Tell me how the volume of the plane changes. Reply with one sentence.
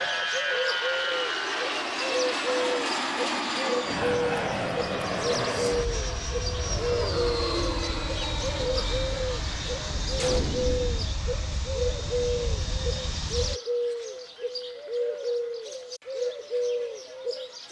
The loudness of the plane goes down.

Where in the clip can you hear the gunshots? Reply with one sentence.
The gunshots can be heard from 9.8 to 11.2 s.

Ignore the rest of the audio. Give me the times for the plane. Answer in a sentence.
You can hear the plane from 0.0 to 13.6 s.